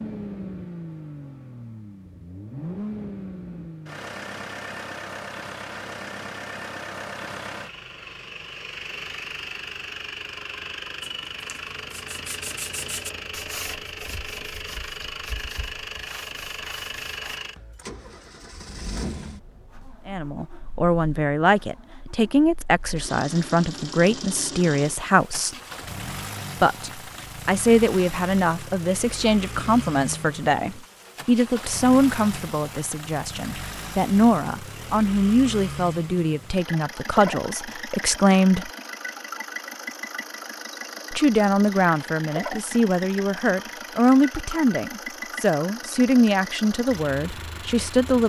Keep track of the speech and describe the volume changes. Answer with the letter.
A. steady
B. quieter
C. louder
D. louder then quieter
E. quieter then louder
A.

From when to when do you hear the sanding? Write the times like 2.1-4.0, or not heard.
11.0-17.4.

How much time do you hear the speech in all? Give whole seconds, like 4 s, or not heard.
25 s.